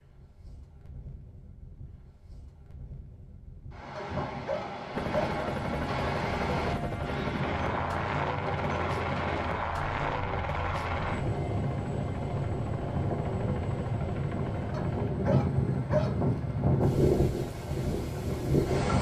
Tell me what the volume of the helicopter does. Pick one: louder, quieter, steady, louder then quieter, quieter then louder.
quieter.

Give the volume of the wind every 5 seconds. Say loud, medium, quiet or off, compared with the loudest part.
quiet, medium, medium, loud.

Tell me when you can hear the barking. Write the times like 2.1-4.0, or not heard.
4.0-5.4, 14.7-16.2.